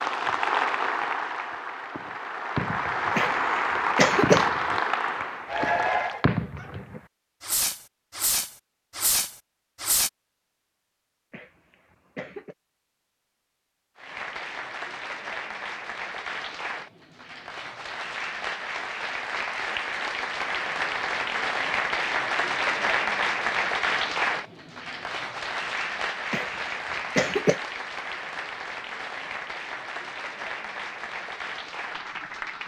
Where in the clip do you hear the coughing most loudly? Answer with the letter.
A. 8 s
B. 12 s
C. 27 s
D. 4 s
D.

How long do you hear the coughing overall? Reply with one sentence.
The coughing can be heard for 4 seconds in total.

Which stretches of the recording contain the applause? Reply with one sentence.
The applause can be heard from 0.0 to 6.2 s and from 13.9 to 32.6 s.